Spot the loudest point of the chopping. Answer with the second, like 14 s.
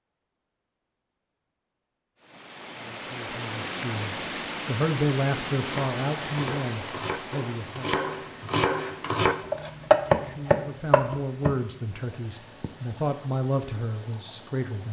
10 s.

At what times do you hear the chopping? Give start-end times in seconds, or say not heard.
5.5-11.6.